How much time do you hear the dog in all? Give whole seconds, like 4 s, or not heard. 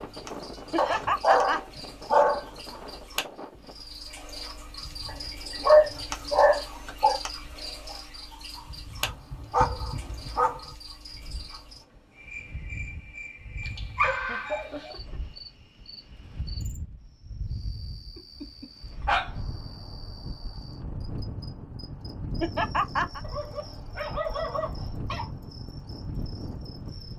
10 s.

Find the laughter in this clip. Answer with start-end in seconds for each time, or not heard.
0.7-1.6, 14.2-15.2, 22.4-23.2.